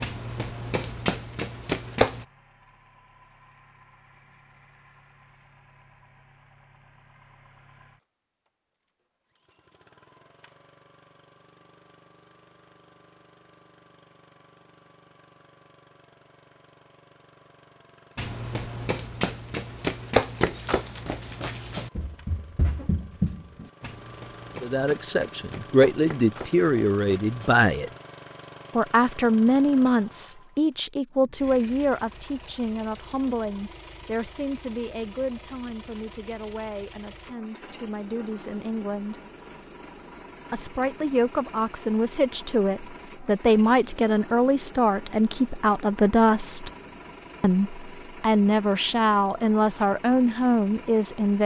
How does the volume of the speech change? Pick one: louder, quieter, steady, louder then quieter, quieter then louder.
quieter then louder.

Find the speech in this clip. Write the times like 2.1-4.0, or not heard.
24.6-27.9, 28.8-39.1, 40.5-46.7, 47.4-51.4.